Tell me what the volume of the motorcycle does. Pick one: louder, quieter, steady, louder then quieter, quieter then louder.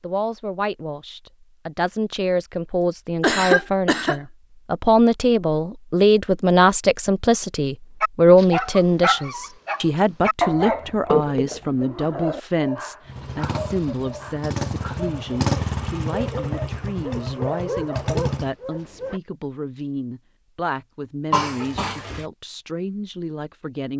louder then quieter.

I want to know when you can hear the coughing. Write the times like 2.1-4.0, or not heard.
3.2-4.2, 10.7-11.8, 21.3-22.2.